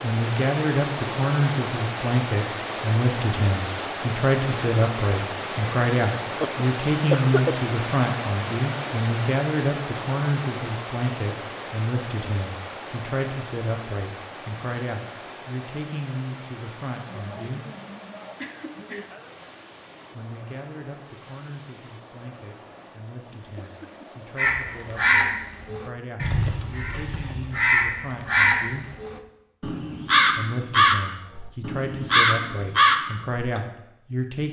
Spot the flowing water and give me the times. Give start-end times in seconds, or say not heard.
0.0-25.1.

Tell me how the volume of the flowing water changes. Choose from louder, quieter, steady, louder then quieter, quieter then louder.
quieter.